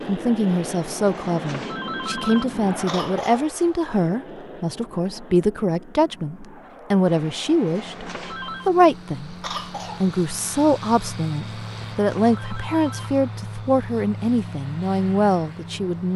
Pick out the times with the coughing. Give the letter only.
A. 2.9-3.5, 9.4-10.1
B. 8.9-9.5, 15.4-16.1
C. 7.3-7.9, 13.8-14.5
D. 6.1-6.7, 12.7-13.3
A.